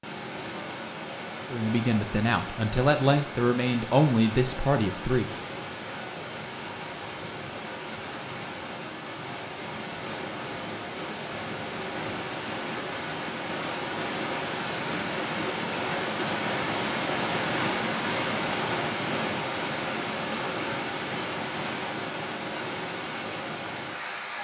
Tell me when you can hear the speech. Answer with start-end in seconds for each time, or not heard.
1.5-5.3.